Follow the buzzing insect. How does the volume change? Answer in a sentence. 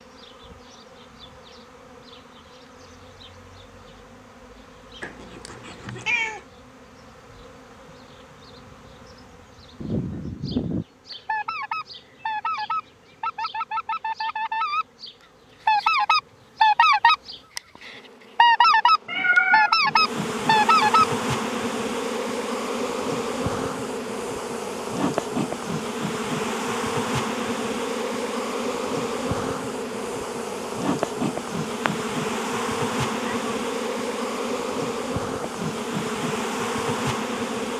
The volume of the buzzing insect goes up.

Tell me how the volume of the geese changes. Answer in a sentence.
The loudness of the geese goes up.